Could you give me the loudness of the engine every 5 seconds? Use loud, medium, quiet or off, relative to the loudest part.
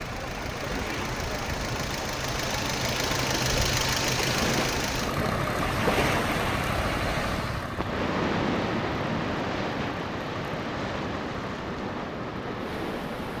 loud, loud, medium.